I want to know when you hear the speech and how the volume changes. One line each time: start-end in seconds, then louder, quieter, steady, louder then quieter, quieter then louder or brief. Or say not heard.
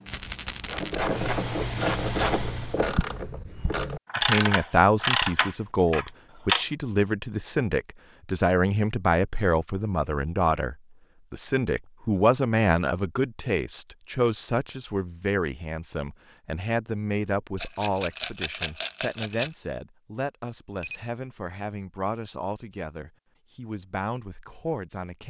4.2-25.2 quieter.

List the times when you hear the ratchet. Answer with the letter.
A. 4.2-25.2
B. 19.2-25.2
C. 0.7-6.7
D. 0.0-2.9
C.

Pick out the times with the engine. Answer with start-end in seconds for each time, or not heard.
0.0-2.9.